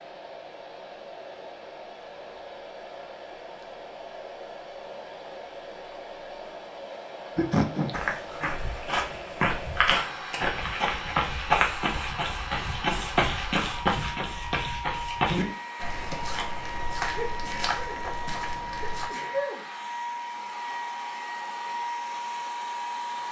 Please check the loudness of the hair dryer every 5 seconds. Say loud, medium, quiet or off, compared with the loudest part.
medium, medium, loud, loud, loud.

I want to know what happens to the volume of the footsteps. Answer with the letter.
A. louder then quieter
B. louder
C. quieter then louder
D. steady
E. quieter
E.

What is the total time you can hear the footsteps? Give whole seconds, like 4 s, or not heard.
11 s.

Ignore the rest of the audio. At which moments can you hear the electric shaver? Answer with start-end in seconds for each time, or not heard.
not heard.